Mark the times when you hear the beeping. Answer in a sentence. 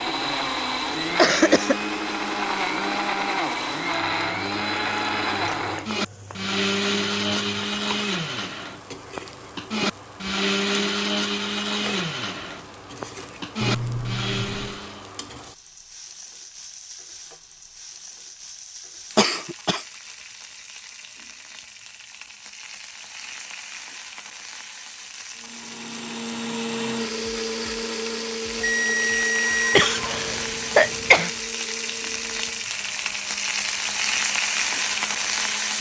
You can hear the beeping from 13.6 to 14.8 s and from 28.6 to 29.9 s.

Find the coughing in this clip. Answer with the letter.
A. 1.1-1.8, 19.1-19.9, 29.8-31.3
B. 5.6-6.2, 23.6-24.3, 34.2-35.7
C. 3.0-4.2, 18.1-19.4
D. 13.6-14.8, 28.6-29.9
A.